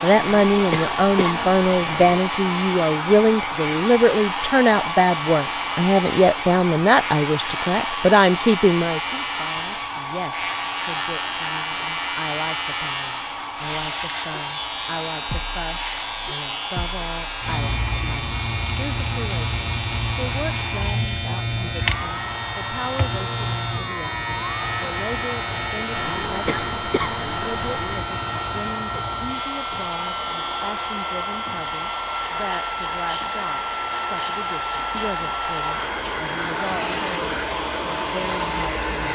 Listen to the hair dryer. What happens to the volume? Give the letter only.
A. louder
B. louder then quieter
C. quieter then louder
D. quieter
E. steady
C.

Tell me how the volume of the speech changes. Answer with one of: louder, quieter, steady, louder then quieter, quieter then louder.
quieter.